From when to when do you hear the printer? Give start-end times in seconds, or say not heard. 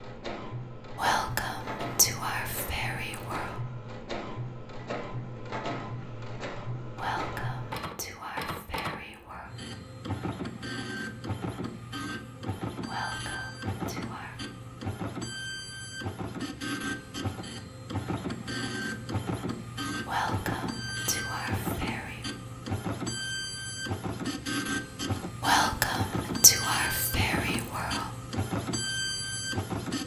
0.0-30.0.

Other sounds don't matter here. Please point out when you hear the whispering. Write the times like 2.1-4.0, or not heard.
0.9-3.5, 7.0-9.5, 12.8-14.4, 20.1-22.2, 25.4-28.1.